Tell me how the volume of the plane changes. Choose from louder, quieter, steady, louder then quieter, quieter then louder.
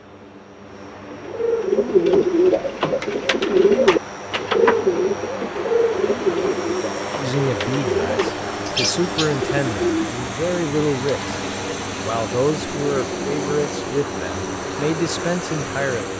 louder.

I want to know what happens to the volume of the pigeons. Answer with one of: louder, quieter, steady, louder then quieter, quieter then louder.
quieter.